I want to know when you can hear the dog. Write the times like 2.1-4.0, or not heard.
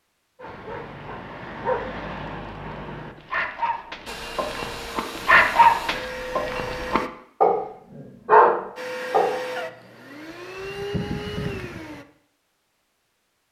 0.4-7.6, 8.2-9.3.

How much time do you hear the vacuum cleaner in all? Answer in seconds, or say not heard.
6 s.